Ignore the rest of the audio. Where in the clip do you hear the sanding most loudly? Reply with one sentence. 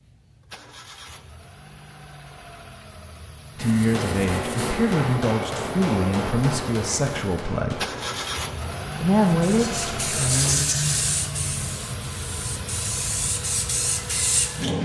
The loudest moment of the sanding is at 11 seconds.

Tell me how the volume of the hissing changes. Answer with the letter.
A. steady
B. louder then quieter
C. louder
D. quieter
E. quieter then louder
E.